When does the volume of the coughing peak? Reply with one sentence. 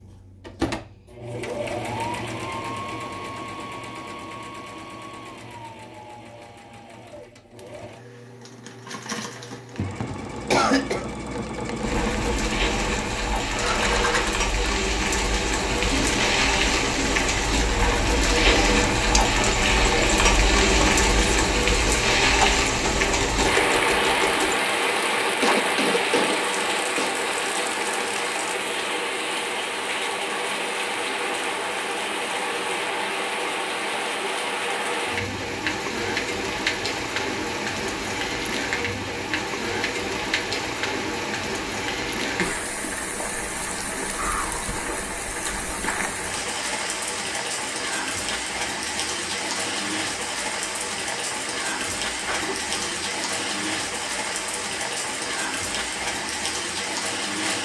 The loudest moment of the coughing is at 11 seconds.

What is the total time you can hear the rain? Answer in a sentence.
The rain can be heard for 46 seconds in total.